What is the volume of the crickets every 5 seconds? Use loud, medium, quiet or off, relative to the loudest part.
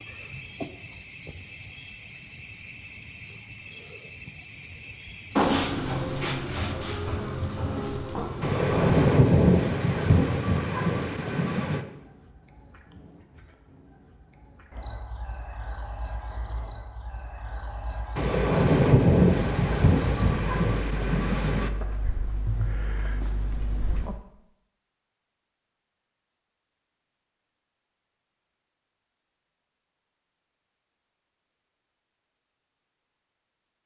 loud, loud, quiet, quiet, quiet, off, off.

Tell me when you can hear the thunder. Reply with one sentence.
The thunder can be heard from 8.4 to 11.8 s and from 18.1 to 21.7 s.